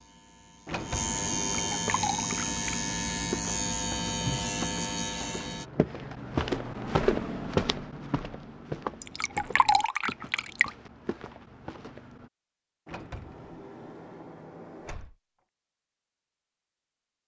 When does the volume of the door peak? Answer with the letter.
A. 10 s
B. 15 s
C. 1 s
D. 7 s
C.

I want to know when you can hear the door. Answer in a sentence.
The door can be heard from 0.7 to 1.9 s and from 12.8 to 15.2 s.